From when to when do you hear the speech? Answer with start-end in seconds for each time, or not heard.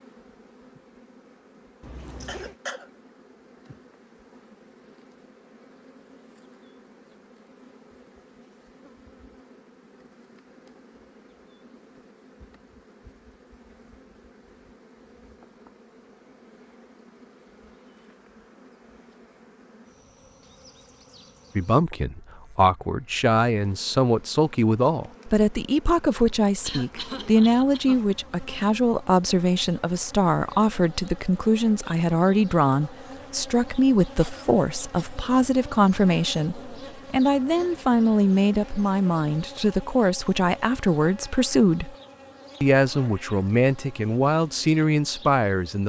21.6-42.0, 42.6-45.8.